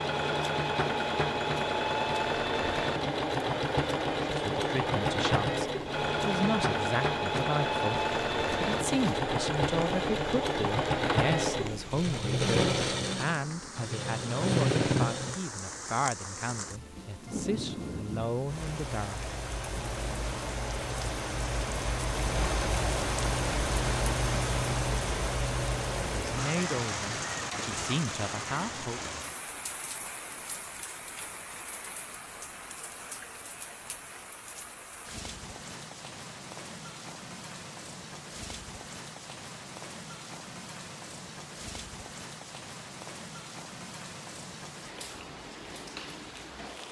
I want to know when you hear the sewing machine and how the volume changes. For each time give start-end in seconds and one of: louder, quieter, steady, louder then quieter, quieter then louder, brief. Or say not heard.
0.0-15.4 steady.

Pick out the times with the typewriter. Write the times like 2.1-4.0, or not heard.
not heard.